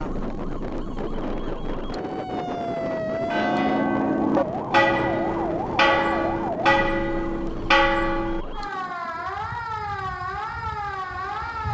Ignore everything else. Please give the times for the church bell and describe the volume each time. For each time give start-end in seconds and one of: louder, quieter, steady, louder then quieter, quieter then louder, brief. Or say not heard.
3.3-8.4 steady.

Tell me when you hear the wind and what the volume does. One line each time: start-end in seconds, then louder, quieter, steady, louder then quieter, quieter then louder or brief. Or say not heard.
0.0-11.6 quieter.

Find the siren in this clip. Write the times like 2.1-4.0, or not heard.
0.0-11.6.